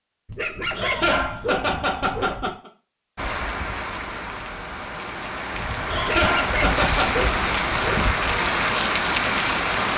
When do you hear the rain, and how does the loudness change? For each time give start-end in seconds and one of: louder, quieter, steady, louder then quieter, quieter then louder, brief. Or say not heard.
3.1-9.9 louder.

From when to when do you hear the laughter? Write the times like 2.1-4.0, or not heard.
0.3-2.7, 5.5-7.2.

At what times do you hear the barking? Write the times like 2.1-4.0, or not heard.
0.2-2.5, 6.0-8.2.